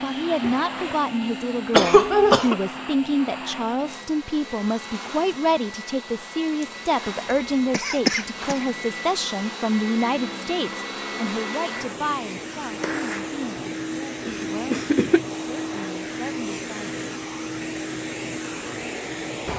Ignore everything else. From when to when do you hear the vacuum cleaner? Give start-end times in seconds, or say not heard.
0.0-19.5.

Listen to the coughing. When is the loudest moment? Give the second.
2 s.